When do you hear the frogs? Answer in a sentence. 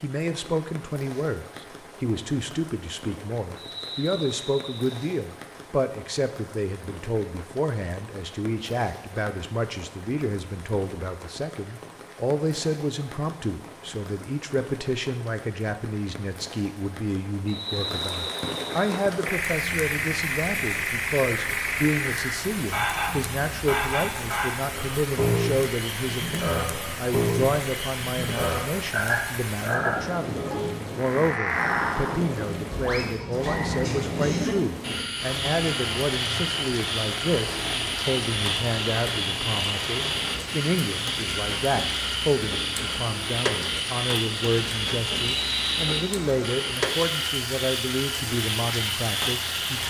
The frogs can be heard from 19.2 to 49.8 s.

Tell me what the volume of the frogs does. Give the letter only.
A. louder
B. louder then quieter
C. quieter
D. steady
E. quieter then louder
D.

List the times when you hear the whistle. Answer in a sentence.
The whistle can be heard from 3.5 to 5.0 s, from 17.4 to 18.9 s and from 45.3 to 46.1 s.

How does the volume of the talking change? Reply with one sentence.
The volume of the talking stays about the same.